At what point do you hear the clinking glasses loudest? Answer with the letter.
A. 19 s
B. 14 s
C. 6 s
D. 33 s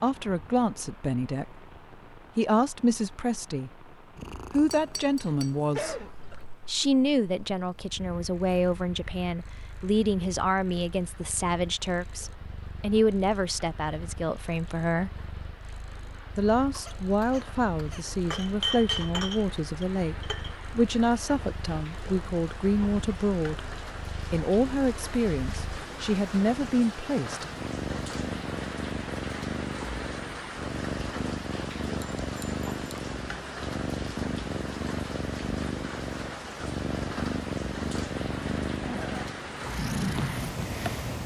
A.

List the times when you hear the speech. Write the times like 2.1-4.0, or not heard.
0.0-1.6, 2.4-3.9, 4.5-6.0, 6.7-15.1, 16.4-23.6, 24.3-27.4.